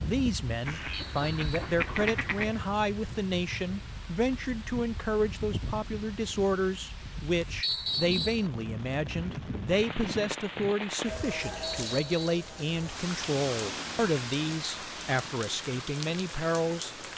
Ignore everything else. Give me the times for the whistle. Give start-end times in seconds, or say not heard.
0.9-1.8, 7.6-8.4, 11.6-12.4.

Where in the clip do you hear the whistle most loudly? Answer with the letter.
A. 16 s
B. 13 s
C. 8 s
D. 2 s
C.